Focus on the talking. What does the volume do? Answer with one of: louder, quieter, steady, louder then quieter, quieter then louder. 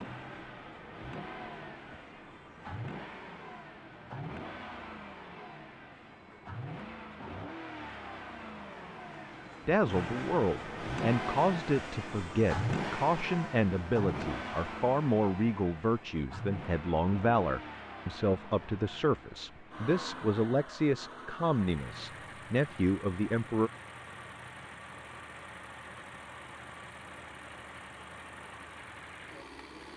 steady.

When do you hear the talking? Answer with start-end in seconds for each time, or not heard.
9.7-23.7.